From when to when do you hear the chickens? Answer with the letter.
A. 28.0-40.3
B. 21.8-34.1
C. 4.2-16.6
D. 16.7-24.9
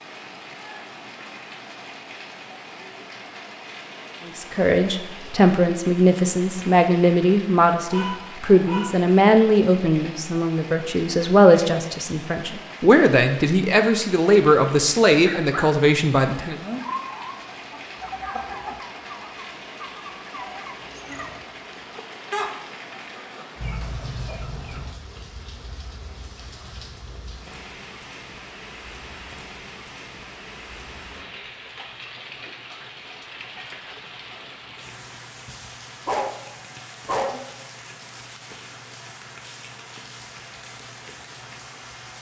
D.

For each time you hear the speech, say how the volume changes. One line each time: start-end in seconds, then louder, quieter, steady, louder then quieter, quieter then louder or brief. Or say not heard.
4.2-16.6 steady.